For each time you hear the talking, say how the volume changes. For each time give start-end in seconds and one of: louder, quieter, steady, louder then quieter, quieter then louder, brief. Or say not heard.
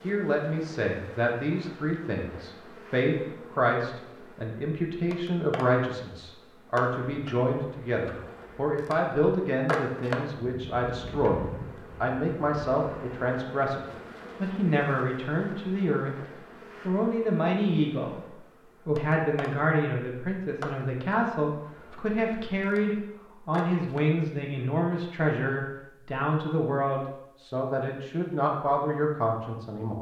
0.0-13.8 steady
14.4-16.1 brief
16.9-18.2 brief
18.9-29.9 steady.